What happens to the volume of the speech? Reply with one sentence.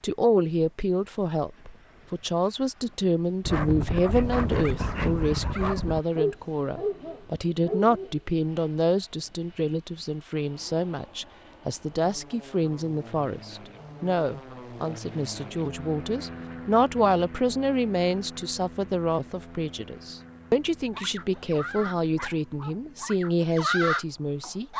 The volume of the speech stays about the same.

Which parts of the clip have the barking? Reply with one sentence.
The barking can be heard from 3.5 to 8.2 s and from 20.9 to 24.7 s.